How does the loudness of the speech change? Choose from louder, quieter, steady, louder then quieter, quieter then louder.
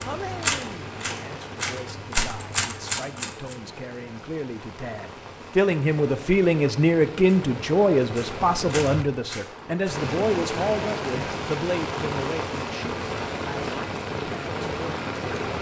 louder then quieter.